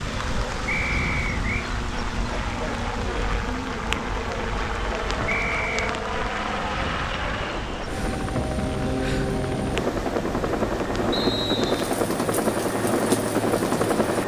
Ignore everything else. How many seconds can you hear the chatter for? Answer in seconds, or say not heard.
not heard.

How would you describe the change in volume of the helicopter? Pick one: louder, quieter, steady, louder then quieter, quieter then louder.
louder.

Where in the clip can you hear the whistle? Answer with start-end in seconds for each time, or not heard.
0.7-1.7, 5.2-5.9, 11.1-11.9.